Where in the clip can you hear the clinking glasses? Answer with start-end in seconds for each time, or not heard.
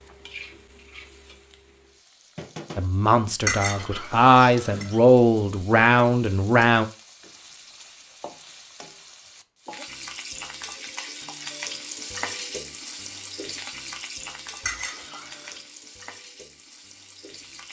3.5-5.0, 14.6-15.6.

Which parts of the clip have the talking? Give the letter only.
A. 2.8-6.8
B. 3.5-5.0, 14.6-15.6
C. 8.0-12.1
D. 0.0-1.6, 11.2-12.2
A.